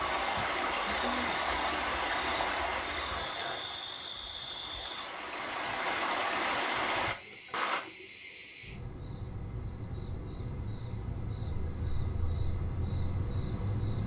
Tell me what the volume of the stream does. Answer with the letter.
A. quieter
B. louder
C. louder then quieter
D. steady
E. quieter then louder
E.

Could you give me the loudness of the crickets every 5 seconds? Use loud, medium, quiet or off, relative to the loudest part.
medium, loud, loud.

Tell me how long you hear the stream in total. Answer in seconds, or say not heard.
8 s.